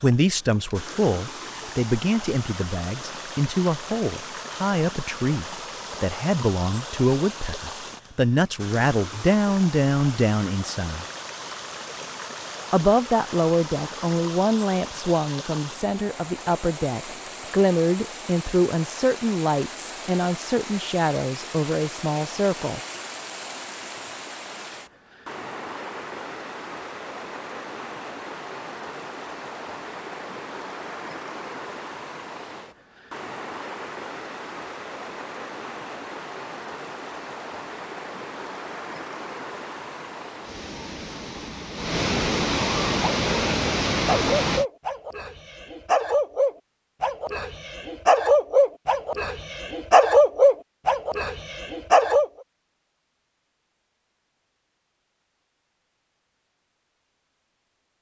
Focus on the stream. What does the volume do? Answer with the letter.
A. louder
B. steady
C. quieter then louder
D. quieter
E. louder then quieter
A.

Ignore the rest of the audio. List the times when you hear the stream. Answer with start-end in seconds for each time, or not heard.
0.0-44.6.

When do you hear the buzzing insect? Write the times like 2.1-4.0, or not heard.
not heard.